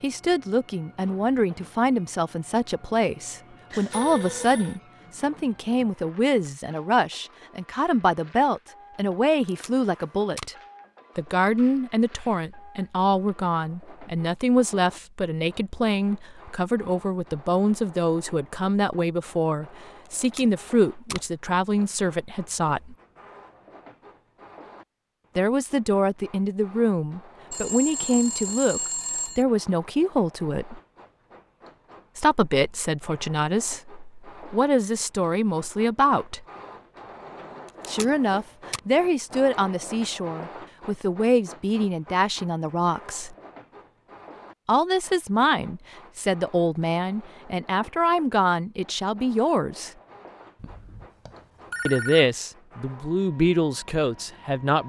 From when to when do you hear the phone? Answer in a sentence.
You can hear the phone from 3.7 to 4.8 s, from 27.5 to 29.4 s and from 50.5 to 52.2 s.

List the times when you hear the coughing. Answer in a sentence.
The coughing can't be heard in this clip.